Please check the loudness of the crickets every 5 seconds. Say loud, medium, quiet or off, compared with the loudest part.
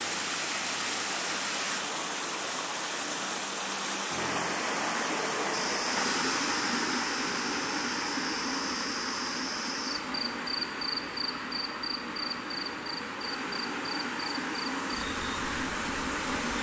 off, loud, loud, medium.